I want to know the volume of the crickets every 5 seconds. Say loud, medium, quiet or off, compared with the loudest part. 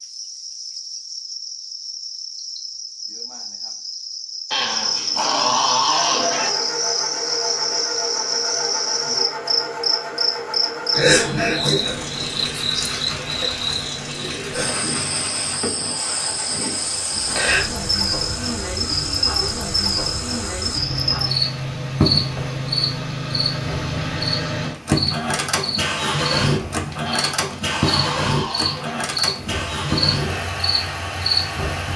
medium, loud, loud, loud, loud, loud, loud.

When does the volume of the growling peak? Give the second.
6 s.